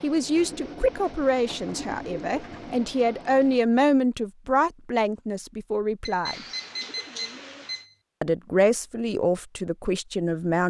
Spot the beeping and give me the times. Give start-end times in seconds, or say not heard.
6.0-8.0.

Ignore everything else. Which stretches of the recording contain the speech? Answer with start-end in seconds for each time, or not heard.
0.0-6.5, 8.2-10.6.